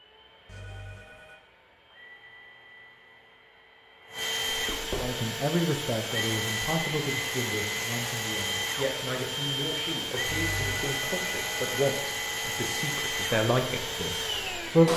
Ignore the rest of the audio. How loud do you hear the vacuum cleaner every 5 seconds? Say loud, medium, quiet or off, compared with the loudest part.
medium, loud, loud.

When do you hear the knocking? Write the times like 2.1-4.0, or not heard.
4.5-5.2.